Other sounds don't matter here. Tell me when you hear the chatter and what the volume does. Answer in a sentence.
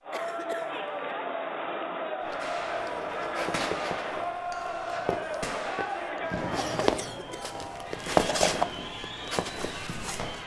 The chatter can be heard from 0.0 to 10.4 s, getting quieter.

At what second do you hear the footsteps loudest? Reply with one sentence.
The volume of the footsteps peaks at 8 seconds.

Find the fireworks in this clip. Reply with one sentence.
The fireworks can be heard from 2.4 to 10.4 s.